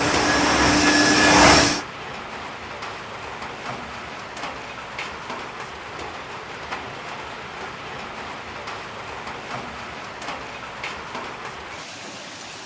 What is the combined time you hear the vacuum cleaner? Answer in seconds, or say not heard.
2 s.